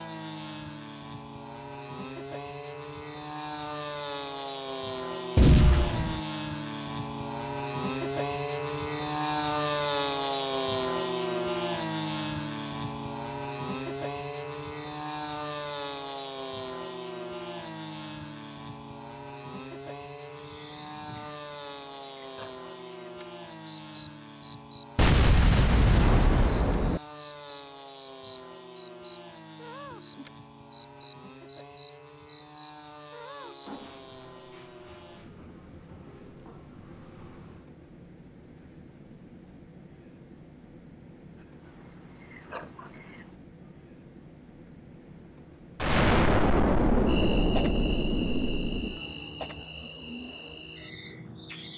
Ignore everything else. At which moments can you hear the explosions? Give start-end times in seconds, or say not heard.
5.3-6.2, 24.9-27.0, 45.8-49.0.